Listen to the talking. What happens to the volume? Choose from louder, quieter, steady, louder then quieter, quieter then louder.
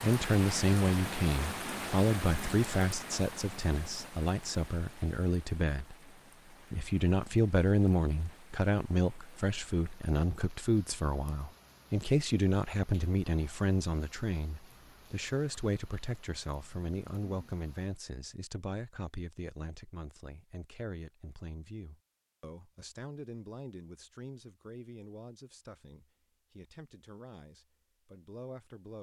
quieter.